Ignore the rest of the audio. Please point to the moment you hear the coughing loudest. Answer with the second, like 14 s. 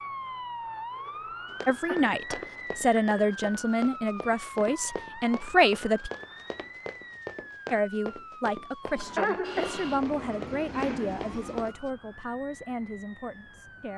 9 s.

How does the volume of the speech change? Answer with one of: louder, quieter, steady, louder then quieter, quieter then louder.
quieter.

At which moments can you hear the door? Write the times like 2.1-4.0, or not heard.
not heard.